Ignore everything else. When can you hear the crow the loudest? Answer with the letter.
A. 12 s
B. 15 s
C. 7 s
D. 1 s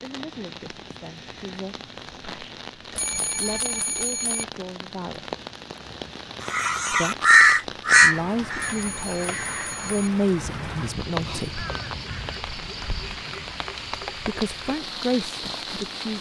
C.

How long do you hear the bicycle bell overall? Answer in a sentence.
The bicycle bell can be heard for 3 seconds in total.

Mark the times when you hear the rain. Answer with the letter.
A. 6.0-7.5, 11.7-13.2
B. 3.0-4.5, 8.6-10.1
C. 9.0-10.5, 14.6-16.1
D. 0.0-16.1
D.